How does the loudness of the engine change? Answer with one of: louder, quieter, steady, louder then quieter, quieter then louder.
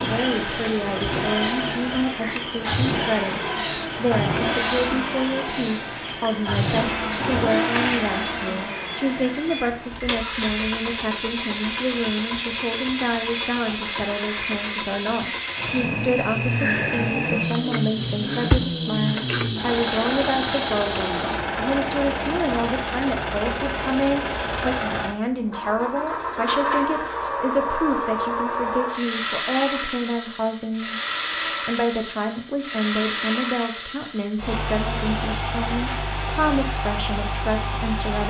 steady.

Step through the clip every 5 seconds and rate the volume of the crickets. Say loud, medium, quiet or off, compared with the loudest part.
medium, medium, medium, loud, loud, off, off, off.